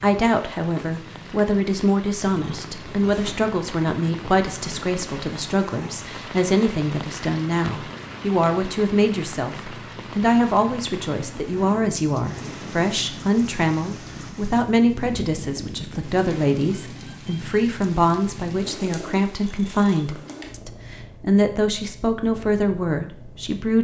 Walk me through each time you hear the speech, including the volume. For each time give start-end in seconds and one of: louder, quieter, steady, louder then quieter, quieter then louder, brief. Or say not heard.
0.0-23.8 steady.